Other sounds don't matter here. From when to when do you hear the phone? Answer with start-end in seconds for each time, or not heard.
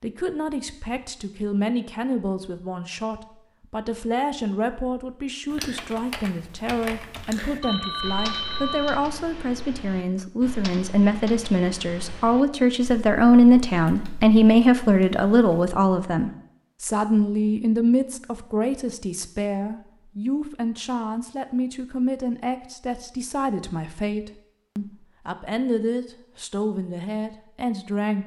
7.6-9.1.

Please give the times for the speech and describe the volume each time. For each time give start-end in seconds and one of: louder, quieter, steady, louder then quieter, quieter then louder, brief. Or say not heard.
0.0-28.2 louder then quieter.